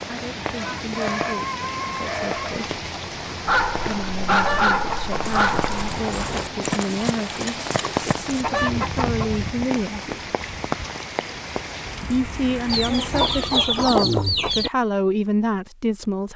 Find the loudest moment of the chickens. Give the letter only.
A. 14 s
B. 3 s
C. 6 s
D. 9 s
A.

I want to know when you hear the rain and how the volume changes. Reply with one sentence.
The rain can be heard from 0.0 to 13.8 s, at a steady volume.